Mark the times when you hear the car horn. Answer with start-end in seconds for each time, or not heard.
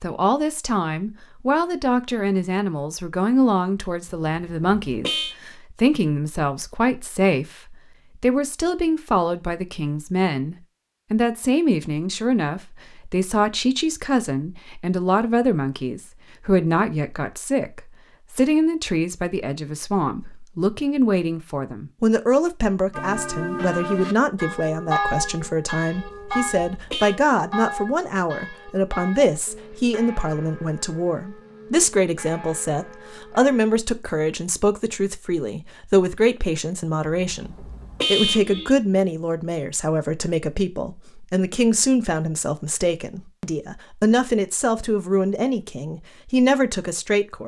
4.2-5.3, 25.9-27.1, 37.2-38.8.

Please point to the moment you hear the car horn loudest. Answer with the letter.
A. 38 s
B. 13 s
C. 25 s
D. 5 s
A.